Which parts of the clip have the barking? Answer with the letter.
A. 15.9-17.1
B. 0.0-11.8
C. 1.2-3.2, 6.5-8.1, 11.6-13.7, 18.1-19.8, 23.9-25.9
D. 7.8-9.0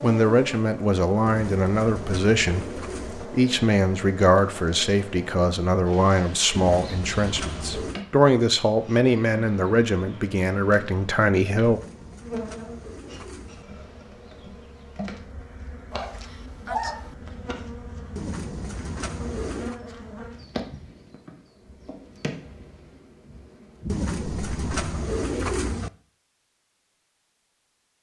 A.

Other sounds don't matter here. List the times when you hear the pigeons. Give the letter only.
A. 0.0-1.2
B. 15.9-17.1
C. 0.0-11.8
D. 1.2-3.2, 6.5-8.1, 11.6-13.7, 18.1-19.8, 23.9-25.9
D.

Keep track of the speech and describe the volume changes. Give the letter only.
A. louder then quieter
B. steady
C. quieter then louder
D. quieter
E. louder
B.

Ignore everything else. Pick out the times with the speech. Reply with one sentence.
The speech can be heard from 0.0 to 11.8 s.